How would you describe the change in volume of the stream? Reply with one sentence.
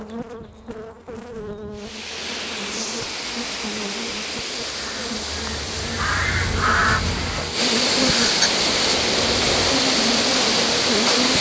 The volume of the stream goes up.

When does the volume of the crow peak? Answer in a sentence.
The loudest moment of the crow is at 7 seconds.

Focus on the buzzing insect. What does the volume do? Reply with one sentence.
The loudness of the buzzing insect goes up.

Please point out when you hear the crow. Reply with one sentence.
You can hear the crow from 4.8 to 7.5 s.